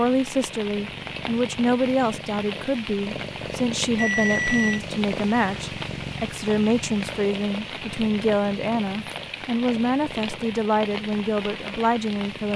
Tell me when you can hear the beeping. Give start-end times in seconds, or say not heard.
4.0-4.8.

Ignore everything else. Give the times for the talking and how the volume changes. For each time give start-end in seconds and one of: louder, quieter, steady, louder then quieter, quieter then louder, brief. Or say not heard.
0.0-12.5 steady.